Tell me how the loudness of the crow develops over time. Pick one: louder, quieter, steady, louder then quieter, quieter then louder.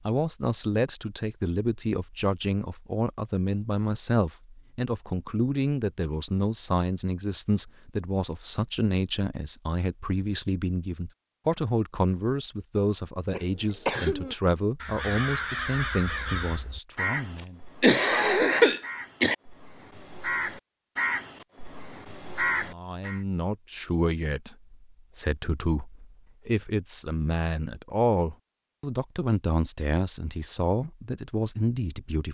quieter then louder.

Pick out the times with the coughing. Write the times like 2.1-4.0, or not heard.
13.3-14.3, 17.4-19.4.